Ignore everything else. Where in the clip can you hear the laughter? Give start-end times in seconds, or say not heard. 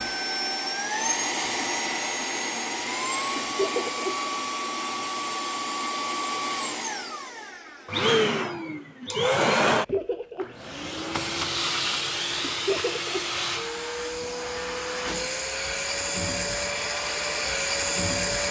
3.4-4.0, 9.7-10.5, 12.4-13.2.